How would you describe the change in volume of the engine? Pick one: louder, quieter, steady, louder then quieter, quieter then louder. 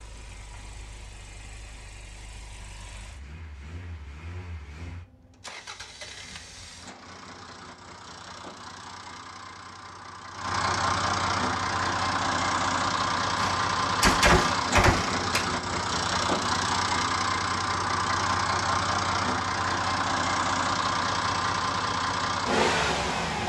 louder.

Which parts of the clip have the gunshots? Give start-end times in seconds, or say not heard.
13.3-15.4.